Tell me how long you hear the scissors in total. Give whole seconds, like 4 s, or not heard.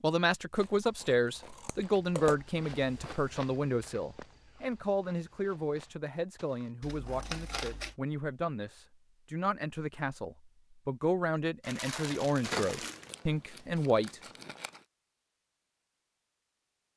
5 s.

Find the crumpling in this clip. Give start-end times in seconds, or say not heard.
11.6-13.2.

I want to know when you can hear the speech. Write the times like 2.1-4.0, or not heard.
0.0-14.2.